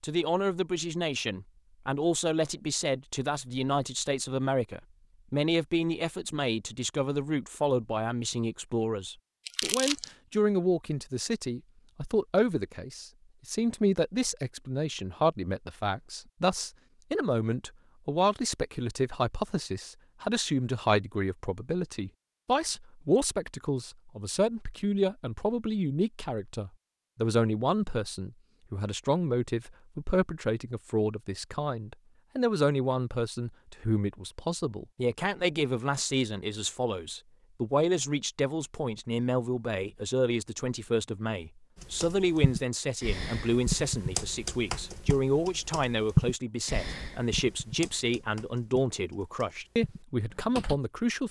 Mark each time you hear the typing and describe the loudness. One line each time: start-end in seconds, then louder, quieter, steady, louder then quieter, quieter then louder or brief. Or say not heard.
41.8-50.8 louder then quieter.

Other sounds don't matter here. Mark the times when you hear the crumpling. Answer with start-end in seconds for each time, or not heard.
9.4-10.1.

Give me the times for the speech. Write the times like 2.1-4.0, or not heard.
0.0-51.2.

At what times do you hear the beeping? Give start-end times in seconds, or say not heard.
not heard.